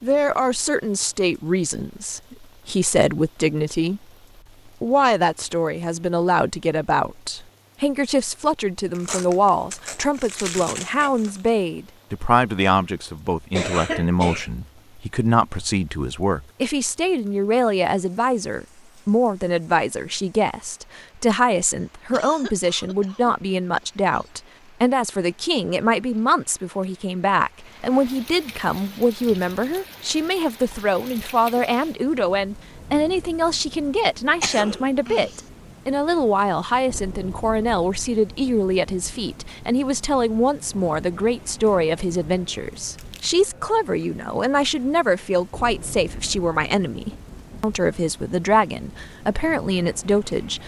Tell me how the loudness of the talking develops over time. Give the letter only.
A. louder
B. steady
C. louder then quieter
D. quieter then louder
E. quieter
B.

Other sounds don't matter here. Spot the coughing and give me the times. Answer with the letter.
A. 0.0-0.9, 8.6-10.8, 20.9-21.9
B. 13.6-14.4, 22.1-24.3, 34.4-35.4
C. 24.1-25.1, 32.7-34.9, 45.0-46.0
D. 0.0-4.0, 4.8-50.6
B.